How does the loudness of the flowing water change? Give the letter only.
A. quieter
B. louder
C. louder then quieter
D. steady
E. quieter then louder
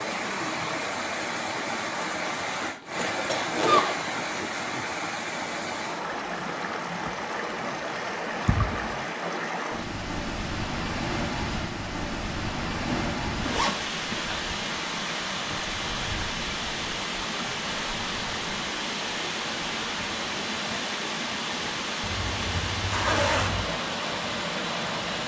D.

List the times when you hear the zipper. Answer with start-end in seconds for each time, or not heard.
2.8-4.5, 12.9-13.8, 22.0-23.7.